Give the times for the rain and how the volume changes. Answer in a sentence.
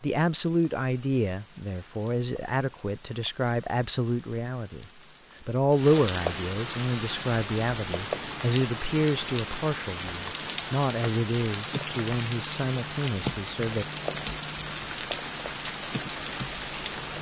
The rain can be heard from 0.0 to 17.1 s, getting louder.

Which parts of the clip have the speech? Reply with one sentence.
You can hear the speech from 0.0 to 13.8 s.